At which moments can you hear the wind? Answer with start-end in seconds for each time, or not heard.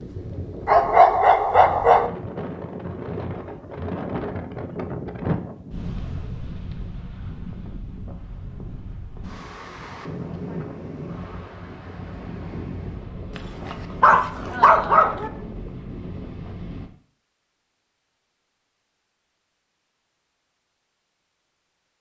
0.0-16.9.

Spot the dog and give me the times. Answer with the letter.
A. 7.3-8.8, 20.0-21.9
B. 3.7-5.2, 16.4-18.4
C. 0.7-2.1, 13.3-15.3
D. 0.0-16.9
C.